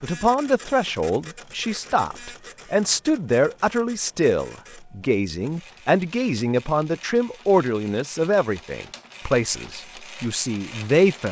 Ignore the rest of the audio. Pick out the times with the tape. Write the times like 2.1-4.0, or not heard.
not heard.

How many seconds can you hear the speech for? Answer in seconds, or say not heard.
11 s.